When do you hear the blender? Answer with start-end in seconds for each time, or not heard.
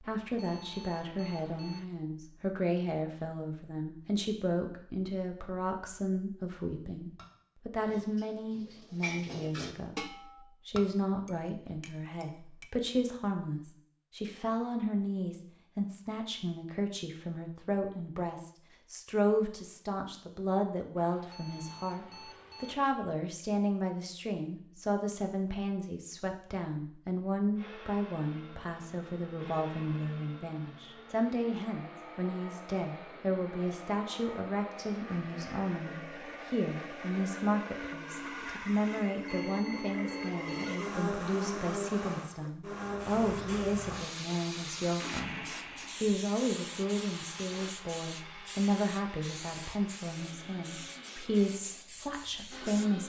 27.6-53.0.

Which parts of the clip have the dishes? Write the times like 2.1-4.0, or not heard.
7.2-12.7.